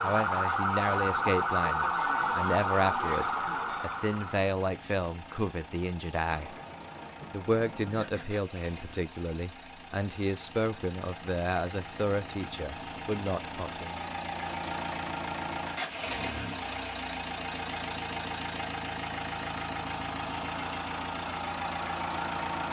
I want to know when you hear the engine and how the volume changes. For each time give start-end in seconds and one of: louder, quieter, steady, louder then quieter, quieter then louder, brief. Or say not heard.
0.0-22.6 louder.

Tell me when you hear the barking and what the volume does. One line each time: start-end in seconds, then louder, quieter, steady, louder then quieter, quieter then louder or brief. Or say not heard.
not heard.